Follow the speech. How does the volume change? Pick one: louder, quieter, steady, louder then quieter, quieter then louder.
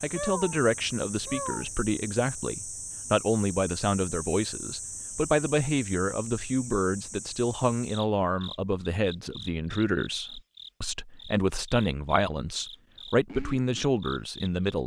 steady.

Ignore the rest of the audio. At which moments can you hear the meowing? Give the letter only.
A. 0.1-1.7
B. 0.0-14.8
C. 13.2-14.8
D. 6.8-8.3
A.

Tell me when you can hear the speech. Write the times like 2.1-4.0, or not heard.
0.0-14.8.